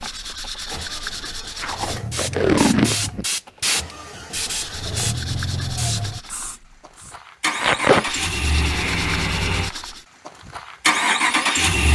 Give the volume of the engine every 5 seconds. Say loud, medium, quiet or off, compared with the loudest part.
quiet, medium, loud.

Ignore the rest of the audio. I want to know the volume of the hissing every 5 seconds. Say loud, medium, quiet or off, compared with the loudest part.
loud, medium, off.